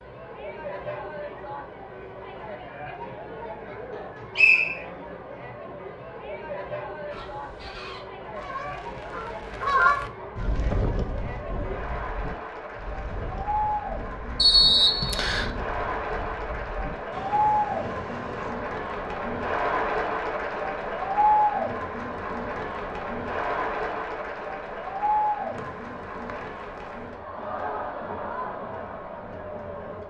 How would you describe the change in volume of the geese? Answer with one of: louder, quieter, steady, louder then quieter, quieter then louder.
louder then quieter.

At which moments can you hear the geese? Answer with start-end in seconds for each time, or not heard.
7.1-18.5.